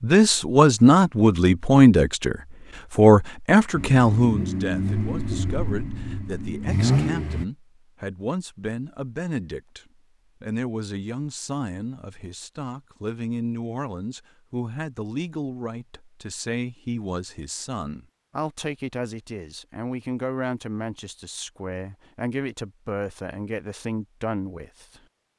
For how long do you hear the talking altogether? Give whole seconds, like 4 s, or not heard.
25 s.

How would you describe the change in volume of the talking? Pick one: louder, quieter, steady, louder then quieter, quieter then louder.
quieter.